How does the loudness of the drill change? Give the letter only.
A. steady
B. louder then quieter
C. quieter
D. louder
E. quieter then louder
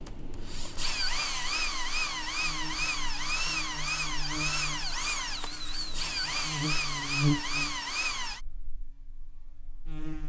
A.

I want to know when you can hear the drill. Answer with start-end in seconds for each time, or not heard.
0.0-8.4.